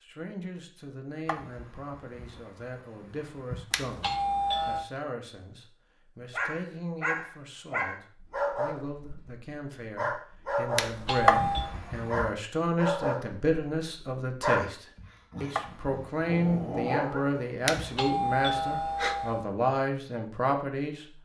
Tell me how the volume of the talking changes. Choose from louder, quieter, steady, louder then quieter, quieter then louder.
louder.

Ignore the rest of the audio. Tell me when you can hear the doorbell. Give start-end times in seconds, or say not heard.
3.7-4.8, 10.8-11.8, 17.6-19.5.